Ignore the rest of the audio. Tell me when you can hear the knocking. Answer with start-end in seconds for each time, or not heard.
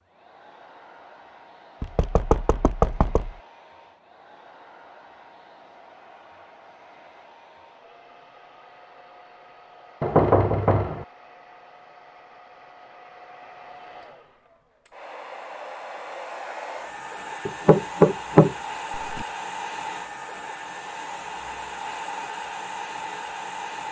1.8-3.4, 10.0-11.1, 17.4-19.2.